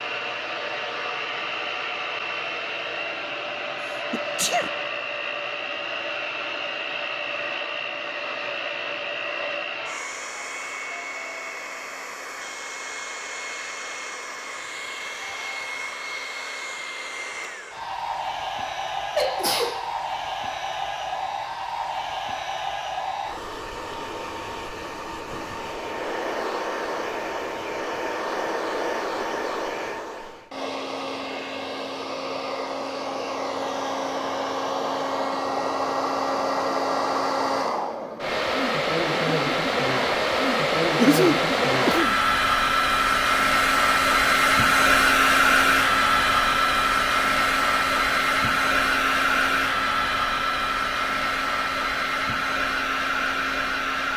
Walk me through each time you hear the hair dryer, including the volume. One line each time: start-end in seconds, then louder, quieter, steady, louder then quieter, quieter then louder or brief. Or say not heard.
0.0-54.1 louder.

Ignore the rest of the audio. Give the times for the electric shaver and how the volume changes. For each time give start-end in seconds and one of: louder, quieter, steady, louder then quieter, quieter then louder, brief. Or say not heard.
not heard.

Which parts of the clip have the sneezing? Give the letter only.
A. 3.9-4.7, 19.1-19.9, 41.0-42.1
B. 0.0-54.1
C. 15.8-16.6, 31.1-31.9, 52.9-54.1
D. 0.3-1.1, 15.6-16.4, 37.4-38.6
A.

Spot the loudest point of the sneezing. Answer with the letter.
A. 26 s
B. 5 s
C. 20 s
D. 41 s
D.